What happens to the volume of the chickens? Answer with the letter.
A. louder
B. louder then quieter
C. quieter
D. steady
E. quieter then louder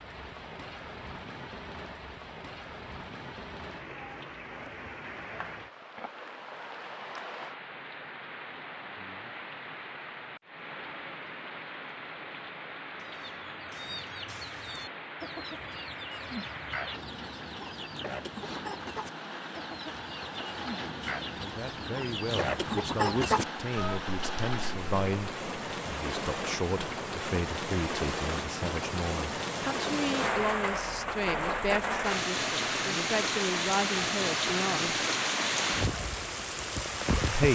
A.